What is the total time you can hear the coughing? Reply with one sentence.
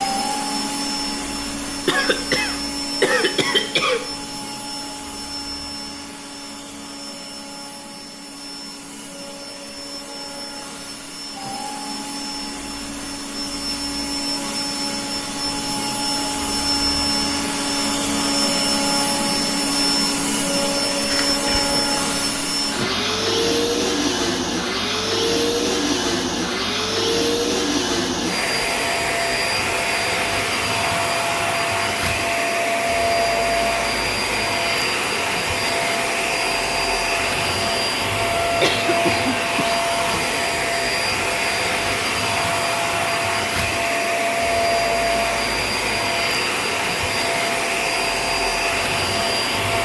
You can hear the coughing for 4 seconds altogether.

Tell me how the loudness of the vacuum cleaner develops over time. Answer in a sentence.
The volume of the vacuum cleaner goes up.